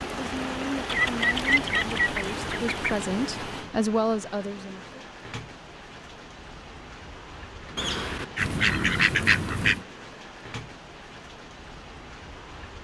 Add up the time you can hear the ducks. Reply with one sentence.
You can hear the ducks for 4 seconds altogether.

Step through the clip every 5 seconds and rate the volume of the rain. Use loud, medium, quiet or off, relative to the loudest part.
loud, medium, medium.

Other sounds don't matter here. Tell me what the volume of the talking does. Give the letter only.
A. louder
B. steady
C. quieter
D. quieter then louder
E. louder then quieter
A.